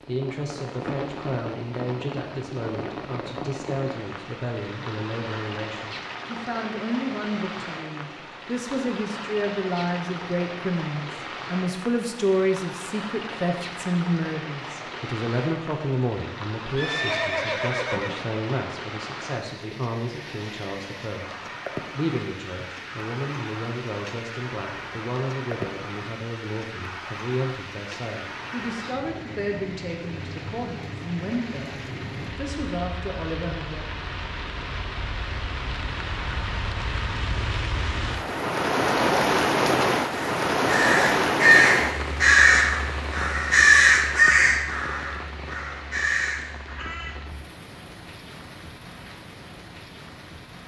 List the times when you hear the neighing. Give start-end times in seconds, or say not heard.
16.8-18.3.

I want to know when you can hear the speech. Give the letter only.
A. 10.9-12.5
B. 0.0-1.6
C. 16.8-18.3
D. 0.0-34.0
D.